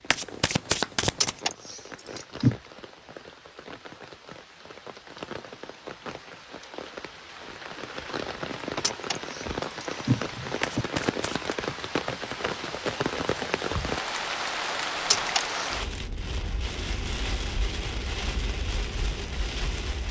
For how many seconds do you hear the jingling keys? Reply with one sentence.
You can hear the jingling keys for 4 seconds altogether.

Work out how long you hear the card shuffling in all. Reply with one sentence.
You can hear the card shuffling for 2 seconds altogether.